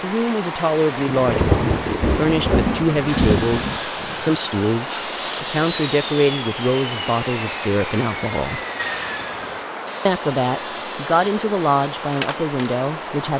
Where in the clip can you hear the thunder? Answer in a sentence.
You can hear the thunder from 1.2 to 3.8 s.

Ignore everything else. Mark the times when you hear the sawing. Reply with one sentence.
You can hear the sawing from 3.0 to 12.8 s.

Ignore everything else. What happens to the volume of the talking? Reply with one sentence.
The loudness of the talking stays about the same.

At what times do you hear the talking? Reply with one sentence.
You can hear the talking from 0.0 to 8.6 s and from 10.1 to 13.3 s.